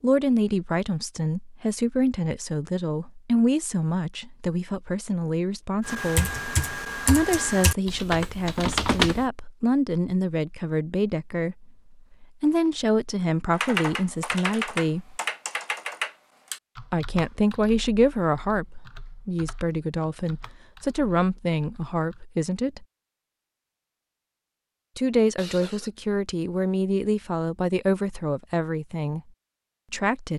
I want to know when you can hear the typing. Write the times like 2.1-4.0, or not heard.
5.8-9.2, 13.5-22.2.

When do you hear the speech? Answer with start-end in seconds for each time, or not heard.
0.0-6.4, 7.0-15.2, 16.9-22.9, 24.9-29.2, 29.9-30.3.